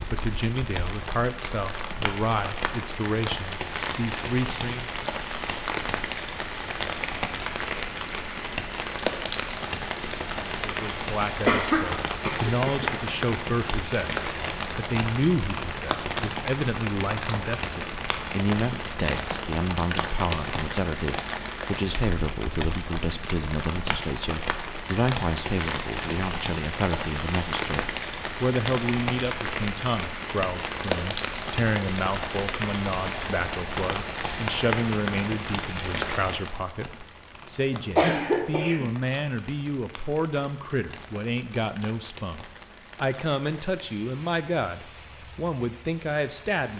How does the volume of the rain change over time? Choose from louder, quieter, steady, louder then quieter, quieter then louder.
quieter.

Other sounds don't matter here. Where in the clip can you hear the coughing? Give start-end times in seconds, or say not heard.
11.4-12.9, 37.8-38.9.